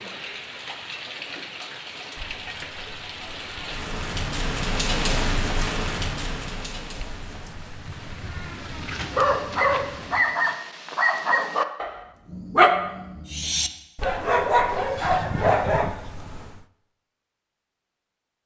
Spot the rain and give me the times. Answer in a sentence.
You can hear the rain from 0.0 to 10.2 s.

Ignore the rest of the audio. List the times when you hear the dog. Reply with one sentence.
You can hear the dog from 8.7 to 15.9 s.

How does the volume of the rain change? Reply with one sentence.
The volume of the rain goes up, then down.